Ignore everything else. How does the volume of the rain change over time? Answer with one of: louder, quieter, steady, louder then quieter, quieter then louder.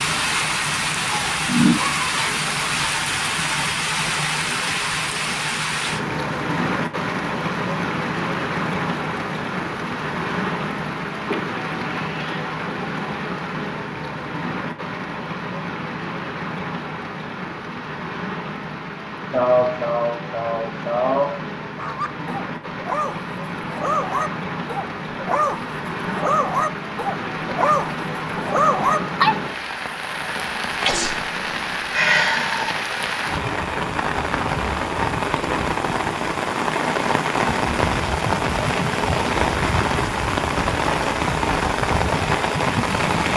quieter then louder.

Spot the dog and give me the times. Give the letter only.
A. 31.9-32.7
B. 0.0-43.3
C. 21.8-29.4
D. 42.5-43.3
C.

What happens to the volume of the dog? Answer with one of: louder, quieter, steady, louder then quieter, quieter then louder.
louder.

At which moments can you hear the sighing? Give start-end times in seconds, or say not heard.
31.9-32.7.